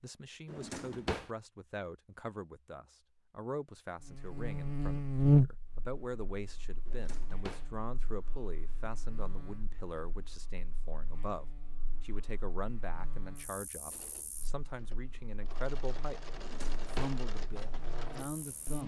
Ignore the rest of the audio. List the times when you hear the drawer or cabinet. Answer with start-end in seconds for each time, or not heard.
0.5-1.3, 6.8-7.7, 16.4-17.2.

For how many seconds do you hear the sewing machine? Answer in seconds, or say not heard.
5 s.